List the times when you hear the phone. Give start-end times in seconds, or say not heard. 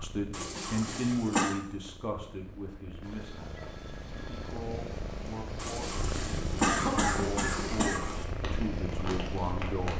3.0-4.6.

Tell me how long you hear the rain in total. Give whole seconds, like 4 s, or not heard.
7 s.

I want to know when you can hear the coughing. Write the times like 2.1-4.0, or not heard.
0.3-1.6, 5.5-8.2.